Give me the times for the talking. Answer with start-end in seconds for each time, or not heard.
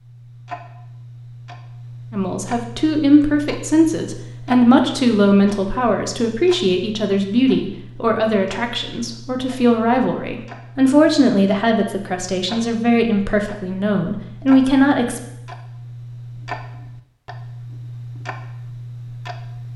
2.1-15.2.